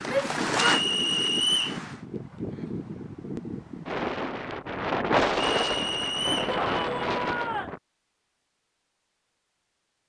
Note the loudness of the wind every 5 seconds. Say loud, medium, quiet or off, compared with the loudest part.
medium, loud.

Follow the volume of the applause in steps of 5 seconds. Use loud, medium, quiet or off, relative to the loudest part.
loud, off.